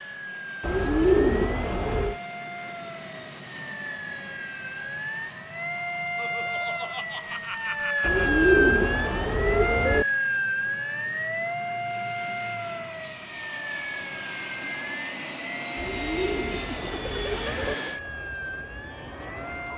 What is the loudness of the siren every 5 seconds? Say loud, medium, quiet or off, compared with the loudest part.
medium, loud, loud, medium.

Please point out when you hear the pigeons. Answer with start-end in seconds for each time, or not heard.
0.6-2.1, 8.0-10.1, 15.8-17.8.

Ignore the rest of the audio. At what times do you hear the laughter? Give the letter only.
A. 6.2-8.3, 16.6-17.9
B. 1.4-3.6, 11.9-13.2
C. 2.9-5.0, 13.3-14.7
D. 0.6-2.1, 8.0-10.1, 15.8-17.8
A.